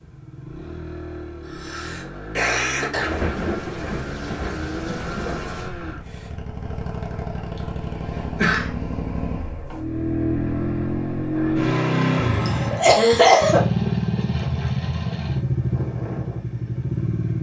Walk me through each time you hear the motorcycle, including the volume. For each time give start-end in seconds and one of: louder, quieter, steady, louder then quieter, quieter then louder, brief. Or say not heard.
0.0-17.3 louder.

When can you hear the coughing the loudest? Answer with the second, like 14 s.
13 s.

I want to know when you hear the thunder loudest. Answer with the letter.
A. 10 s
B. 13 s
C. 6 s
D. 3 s
D.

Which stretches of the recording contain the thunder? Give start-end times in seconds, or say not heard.
2.9-5.7.